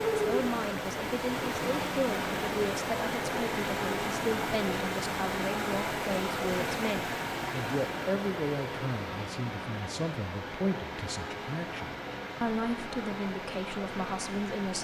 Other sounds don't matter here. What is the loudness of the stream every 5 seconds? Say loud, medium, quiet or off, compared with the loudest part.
loud, loud, medium.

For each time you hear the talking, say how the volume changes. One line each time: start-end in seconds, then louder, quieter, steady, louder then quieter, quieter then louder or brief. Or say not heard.
0.1-14.7 steady.